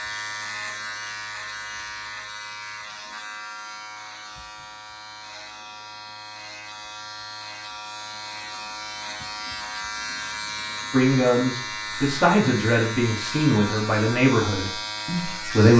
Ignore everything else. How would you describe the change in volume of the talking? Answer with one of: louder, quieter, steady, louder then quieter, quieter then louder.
quieter.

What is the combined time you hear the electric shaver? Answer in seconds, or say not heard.
16 s.